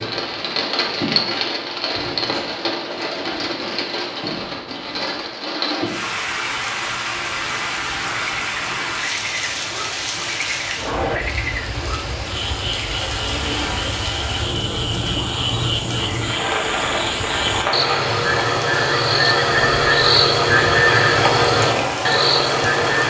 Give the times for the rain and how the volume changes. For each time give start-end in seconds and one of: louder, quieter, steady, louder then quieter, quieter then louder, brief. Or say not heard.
0.0-23.0 steady.